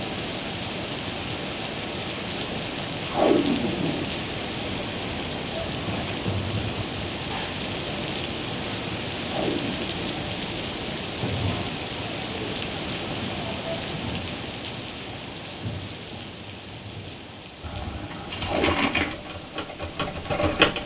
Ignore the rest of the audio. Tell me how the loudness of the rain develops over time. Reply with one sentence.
The loudness of the rain goes down.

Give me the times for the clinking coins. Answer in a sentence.
The clinking coins can be heard from 17.6 to 19.1 s.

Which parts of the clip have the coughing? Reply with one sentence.
You can't hear the coughing here.